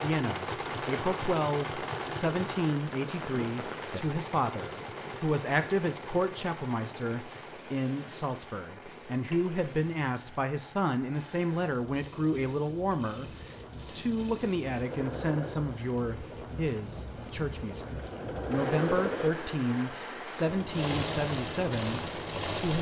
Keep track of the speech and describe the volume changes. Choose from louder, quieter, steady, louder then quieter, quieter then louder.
steady.